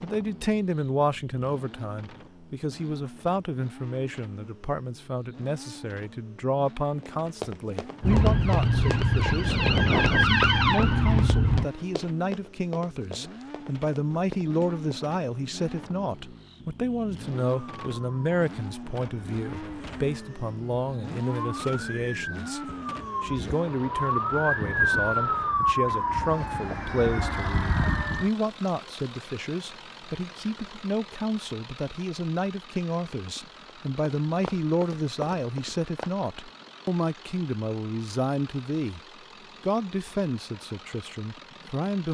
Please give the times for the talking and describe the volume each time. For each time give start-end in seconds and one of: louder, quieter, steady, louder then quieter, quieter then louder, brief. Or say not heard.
0.0-39.0 steady
39.6-42.0 brief.